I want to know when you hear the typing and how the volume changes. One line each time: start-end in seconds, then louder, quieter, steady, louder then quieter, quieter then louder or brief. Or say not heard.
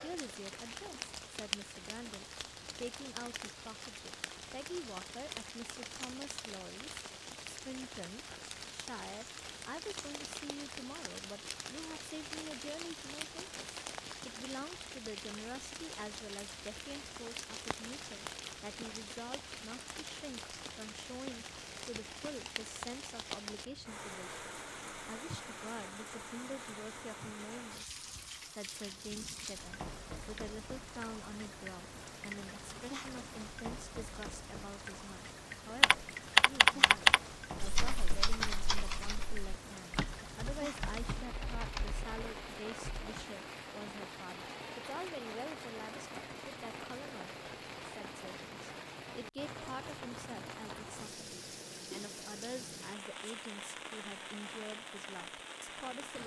35.8-43.2 quieter.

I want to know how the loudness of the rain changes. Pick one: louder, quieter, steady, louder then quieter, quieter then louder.
steady.